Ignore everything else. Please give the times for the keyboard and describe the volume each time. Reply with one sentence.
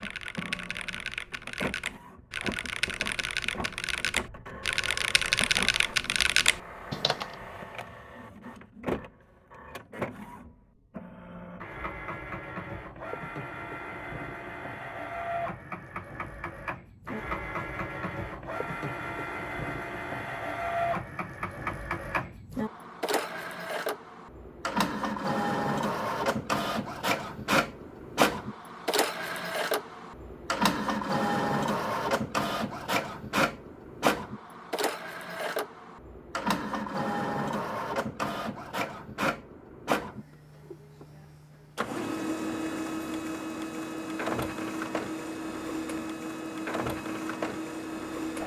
You can hear the keyboard from 0.0 to 7.2 s, getting louder.